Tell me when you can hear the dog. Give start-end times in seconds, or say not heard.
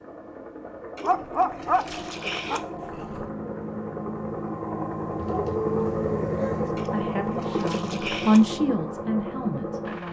1.0-3.3, 5.2-6.7.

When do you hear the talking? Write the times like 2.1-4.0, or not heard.
6.7-10.0.